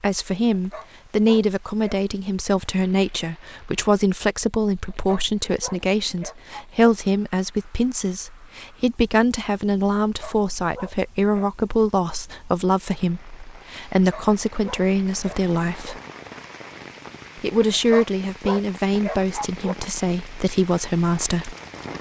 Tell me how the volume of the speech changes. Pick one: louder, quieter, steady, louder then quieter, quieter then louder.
steady.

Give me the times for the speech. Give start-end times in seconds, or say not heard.
0.0-16.0, 17.4-21.6.